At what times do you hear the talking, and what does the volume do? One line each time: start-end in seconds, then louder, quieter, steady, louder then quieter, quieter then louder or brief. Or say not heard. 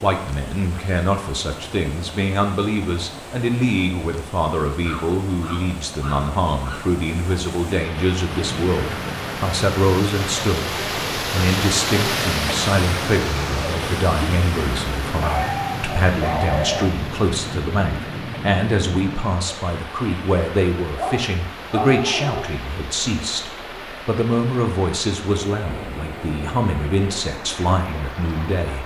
0.0-28.8 steady.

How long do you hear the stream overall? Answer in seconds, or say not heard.
29 s.